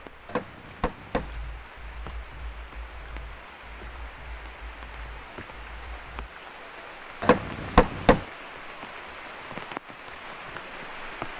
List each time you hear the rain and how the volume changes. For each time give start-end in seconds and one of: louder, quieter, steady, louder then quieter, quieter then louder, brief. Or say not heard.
0.0-11.3 louder.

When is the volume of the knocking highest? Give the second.
8 s.